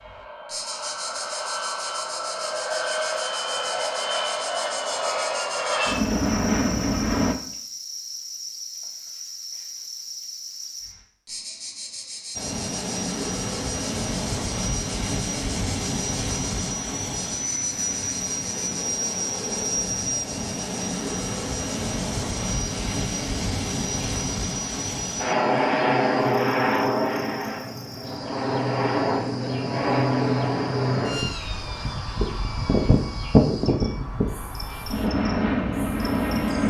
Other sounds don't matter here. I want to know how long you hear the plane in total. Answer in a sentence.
You can hear the plane for 32 seconds altogether.